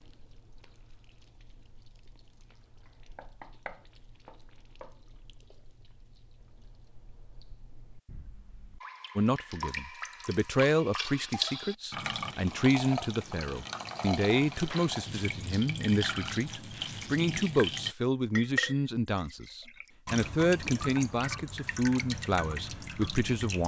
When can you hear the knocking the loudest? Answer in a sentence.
The loudest moment of the knocking is at 4 seconds.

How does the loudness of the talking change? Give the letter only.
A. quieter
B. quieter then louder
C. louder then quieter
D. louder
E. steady
E.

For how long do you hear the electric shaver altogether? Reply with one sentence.
The electric shaver can't be heard in this clip.